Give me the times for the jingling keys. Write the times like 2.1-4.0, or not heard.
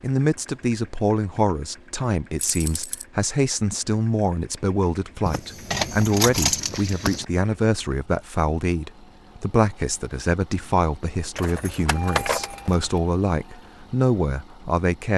2.4-3.0, 5.2-7.2, 11.3-13.0.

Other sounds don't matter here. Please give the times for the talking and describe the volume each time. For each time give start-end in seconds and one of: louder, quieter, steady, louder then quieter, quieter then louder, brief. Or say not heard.
0.0-15.1 steady.